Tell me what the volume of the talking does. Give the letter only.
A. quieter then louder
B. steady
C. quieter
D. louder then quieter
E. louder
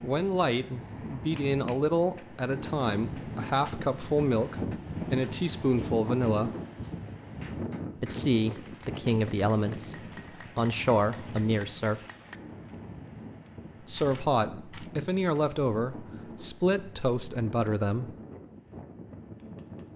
B.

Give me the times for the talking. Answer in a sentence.
You can hear the talking from 0.0 to 6.5 s, from 8.0 to 12.0 s and from 13.8 to 18.1 s.